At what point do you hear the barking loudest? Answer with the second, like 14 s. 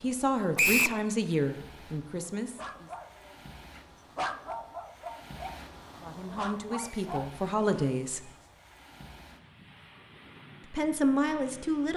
4 s.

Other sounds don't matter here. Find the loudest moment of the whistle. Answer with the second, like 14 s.
1 s.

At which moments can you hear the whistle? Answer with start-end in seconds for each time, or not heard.
0.6-1.0, 6.8-7.2.